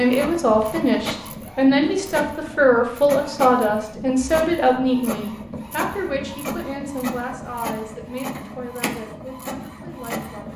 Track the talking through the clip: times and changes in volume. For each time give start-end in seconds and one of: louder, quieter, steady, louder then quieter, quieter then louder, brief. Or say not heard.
0.0-10.5 quieter.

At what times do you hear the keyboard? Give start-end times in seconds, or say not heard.
not heard.